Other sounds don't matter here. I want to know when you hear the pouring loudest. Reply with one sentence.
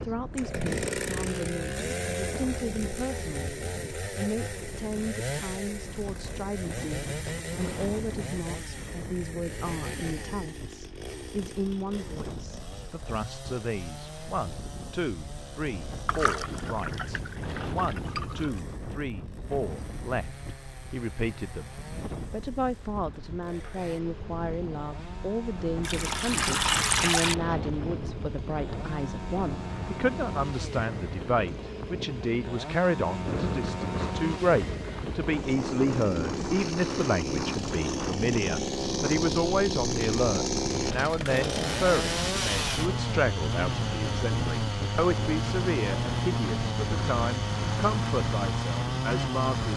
The loudest moment of the pouring is at 27 seconds.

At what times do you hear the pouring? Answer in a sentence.
The pouring can be heard from 16.1 to 18.6 s and from 25.8 to 27.4 s.